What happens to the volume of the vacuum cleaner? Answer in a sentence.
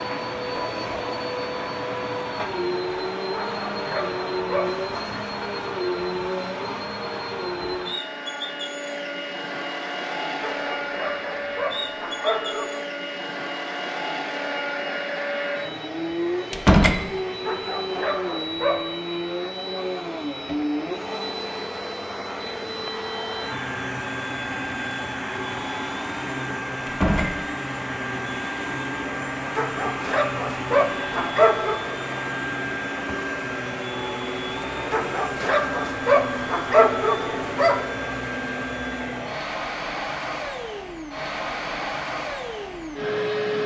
The loudness of the vacuum cleaner stays about the same.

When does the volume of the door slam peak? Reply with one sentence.
The volume of the door slam peaks at 17 seconds.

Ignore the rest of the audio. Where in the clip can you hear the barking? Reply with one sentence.
The barking can be heard from 3.5 to 5.2 s, from 10.4 to 12.7 s, from 17.4 to 18.9 s, from 29.6 to 31.8 s and from 34.9 to 37.9 s.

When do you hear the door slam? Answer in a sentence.
You can hear the door slam from 16.5 to 17.0 s and from 26.9 to 27.3 s.